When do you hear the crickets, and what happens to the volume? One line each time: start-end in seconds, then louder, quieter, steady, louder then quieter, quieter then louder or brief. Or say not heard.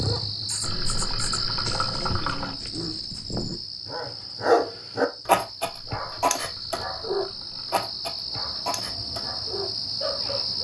0.0-10.5 quieter then louder.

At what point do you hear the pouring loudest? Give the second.
2 s.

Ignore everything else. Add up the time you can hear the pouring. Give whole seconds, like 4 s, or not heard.
4 s.